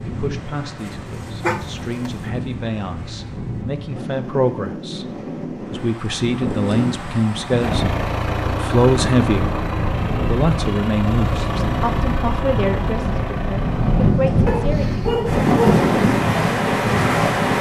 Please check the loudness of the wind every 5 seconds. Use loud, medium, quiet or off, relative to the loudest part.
quiet, medium, medium, loud.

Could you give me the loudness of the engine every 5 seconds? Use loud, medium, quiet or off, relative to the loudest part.
off, loud, loud, off.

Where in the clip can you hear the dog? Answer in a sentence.
The dog can be heard from 1.4 to 2.3 s and from 14.4 to 15.8 s.